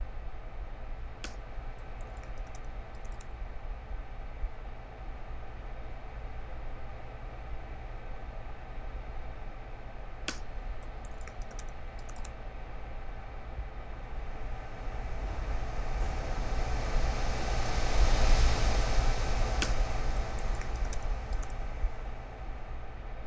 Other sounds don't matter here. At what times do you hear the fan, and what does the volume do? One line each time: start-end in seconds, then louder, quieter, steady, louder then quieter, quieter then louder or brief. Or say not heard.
0.0-23.2 louder.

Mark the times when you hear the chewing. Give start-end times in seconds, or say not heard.
not heard.